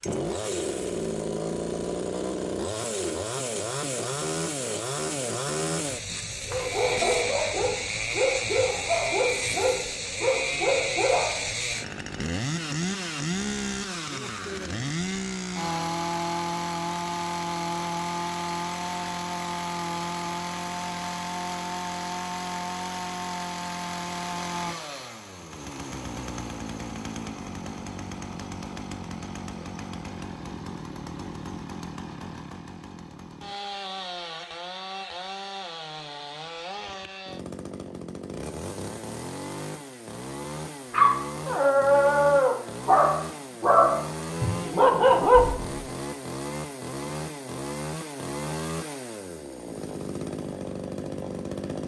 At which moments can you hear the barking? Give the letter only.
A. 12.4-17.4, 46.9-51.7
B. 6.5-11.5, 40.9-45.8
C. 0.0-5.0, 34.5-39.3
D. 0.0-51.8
B.